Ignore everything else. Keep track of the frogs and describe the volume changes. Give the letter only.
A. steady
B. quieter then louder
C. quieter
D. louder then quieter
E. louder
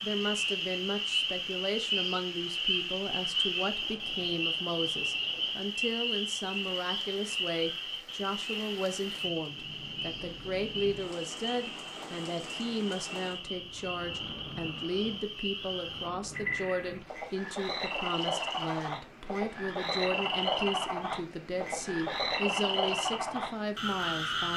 B.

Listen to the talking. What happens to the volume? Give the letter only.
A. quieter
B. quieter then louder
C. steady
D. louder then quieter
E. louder
C.